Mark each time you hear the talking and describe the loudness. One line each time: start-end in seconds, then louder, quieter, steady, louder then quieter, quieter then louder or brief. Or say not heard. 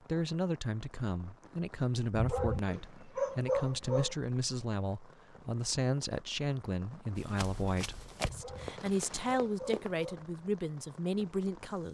0.1-11.8 steady.